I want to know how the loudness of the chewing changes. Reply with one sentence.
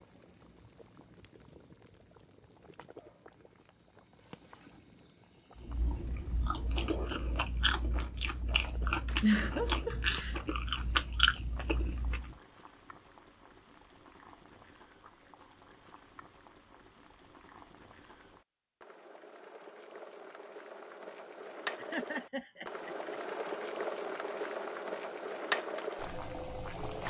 The loudness of the chewing goes up.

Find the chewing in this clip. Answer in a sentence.
You can hear the chewing from 5.5 to 12.3 s.